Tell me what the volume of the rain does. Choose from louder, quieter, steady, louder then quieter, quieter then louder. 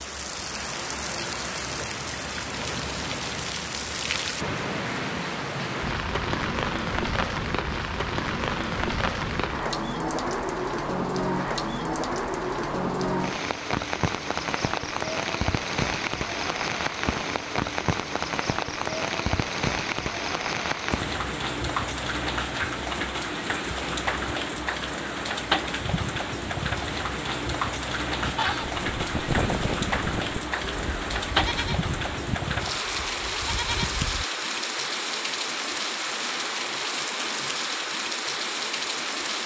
steady.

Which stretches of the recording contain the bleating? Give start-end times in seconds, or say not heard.
28.2-34.2.